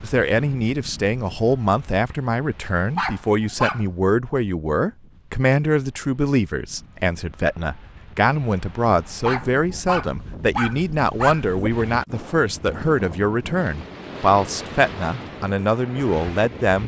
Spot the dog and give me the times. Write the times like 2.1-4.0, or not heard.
2.8-3.9, 9.1-11.7.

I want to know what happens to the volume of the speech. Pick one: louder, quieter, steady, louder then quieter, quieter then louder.
steady.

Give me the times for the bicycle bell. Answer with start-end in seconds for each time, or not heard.
not heard.